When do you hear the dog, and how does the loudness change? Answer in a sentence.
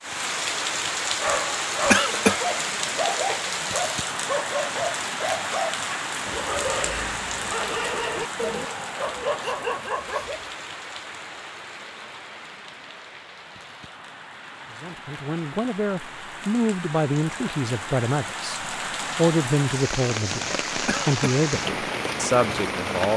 You can hear the dog from 1.2 to 10.5 s, at a steady volume.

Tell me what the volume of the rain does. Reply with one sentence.
The volume of the rain goes down, then up.